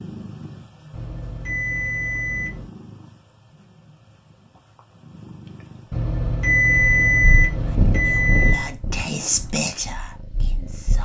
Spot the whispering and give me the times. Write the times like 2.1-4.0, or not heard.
7.6-11.0.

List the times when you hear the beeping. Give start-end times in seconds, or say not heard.
0.9-2.7, 5.9-8.7.